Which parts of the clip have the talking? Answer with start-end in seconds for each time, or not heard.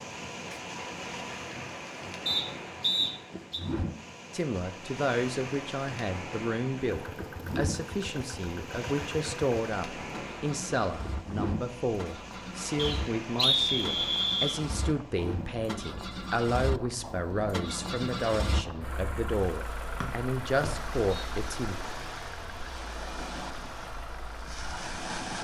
4.3-21.9.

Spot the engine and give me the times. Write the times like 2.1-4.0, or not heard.
6.8-25.2.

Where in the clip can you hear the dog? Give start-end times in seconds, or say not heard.
not heard.